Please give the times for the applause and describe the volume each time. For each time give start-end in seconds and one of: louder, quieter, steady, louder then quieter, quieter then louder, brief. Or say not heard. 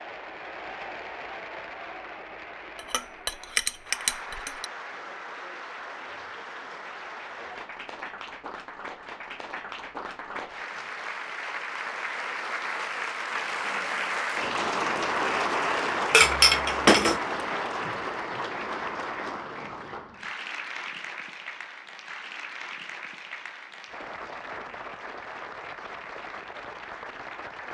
0.0-27.6 louder then quieter.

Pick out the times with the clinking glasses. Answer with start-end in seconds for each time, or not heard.
2.8-4.7, 16.1-17.2.